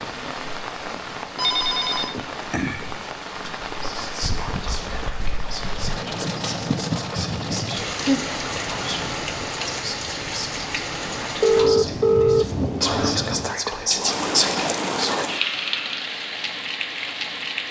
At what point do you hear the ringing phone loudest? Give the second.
12 s.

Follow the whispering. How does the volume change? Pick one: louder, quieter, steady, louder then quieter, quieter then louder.
louder.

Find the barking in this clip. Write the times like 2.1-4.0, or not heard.
not heard.